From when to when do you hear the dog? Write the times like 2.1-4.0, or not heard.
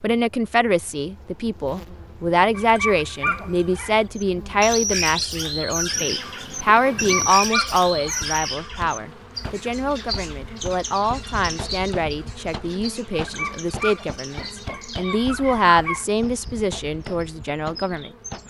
2.5-4.0, 6.8-8.4, 13.1-16.1.